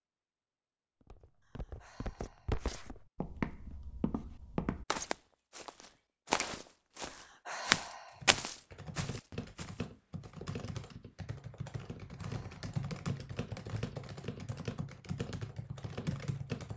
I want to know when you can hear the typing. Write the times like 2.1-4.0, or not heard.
8.2-16.7.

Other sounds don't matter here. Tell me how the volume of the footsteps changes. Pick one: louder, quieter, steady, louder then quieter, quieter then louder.
louder then quieter.